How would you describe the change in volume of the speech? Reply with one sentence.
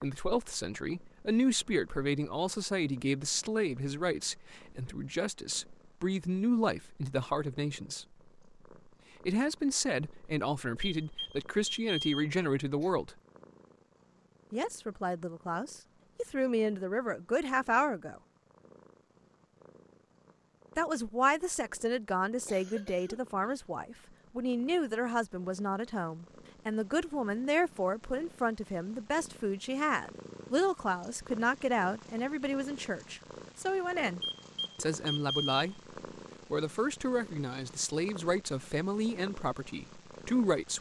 The volume of the speech stays about the same.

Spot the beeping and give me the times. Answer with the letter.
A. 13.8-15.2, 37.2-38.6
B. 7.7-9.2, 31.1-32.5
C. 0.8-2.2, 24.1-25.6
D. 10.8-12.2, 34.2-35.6
D.